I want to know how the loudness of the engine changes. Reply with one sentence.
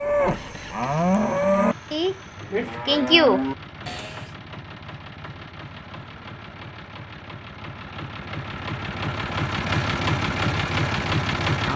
The volume of the engine goes up.